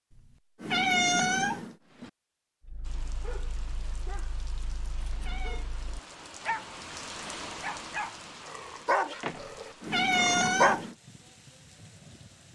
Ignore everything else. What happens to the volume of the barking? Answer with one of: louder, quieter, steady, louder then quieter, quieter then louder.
louder.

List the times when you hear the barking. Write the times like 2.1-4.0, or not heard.
2.6-10.8.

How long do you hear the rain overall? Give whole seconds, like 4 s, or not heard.
10 s.